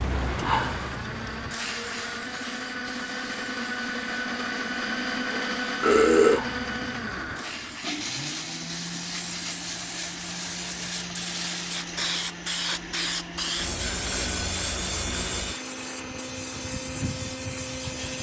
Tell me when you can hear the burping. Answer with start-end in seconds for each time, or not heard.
5.3-6.4.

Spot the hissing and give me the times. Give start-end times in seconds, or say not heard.
0.0-18.1.